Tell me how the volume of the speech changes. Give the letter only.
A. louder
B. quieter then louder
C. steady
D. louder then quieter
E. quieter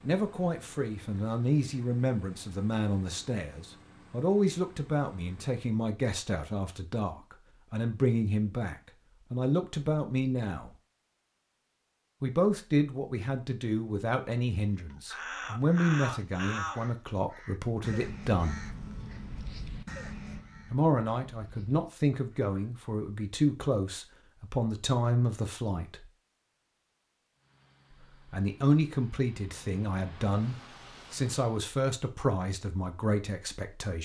C.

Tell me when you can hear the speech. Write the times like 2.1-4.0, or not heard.
0.0-10.8, 12.2-18.6, 20.7-26.1, 27.9-34.0.